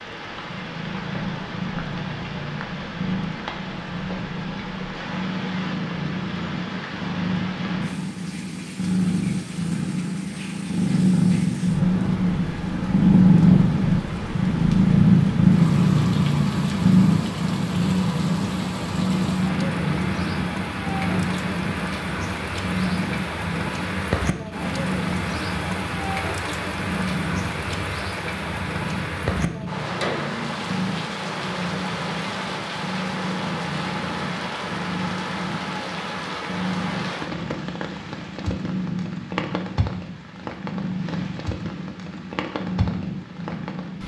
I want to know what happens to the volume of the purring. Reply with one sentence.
The volume of the purring goes up, then down.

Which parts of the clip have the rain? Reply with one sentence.
The rain can be heard from 0.0 to 44.0 s.